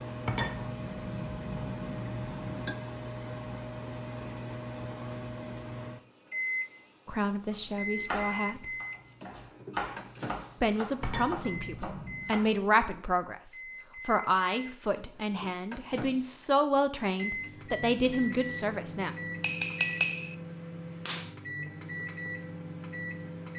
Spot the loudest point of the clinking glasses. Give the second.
20 s.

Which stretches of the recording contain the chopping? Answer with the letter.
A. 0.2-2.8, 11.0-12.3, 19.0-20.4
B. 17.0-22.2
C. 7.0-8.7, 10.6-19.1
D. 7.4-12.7
D.